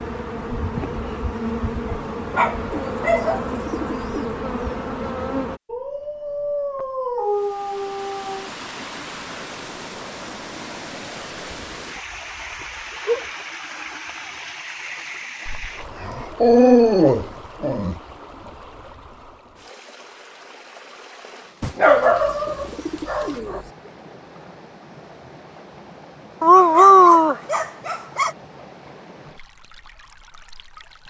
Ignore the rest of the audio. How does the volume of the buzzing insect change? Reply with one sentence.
The volume of the buzzing insect stays about the same.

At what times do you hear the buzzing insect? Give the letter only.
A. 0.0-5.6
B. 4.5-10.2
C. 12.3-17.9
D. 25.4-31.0
A.